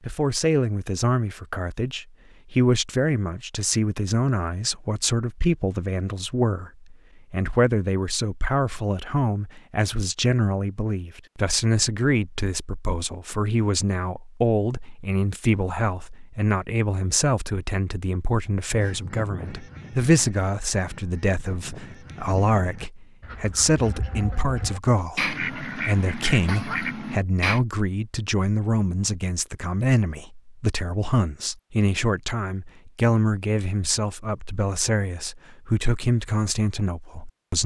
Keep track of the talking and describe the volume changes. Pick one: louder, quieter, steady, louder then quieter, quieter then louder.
steady.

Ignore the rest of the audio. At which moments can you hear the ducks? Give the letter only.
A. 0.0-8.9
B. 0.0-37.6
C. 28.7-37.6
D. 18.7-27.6
D.